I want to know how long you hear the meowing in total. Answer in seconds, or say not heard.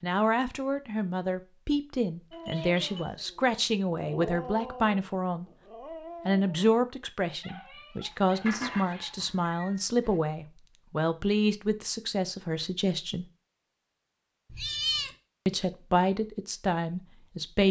3 s.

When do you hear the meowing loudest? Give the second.
15 s.